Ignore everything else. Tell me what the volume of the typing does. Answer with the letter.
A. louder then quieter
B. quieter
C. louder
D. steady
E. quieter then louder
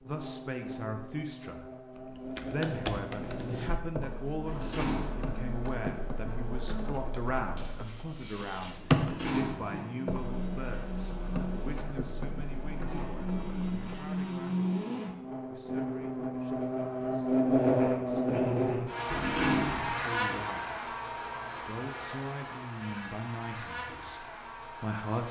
A.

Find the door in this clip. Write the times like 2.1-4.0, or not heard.
4.5-5.3, 8.9-9.8, 19.1-19.9.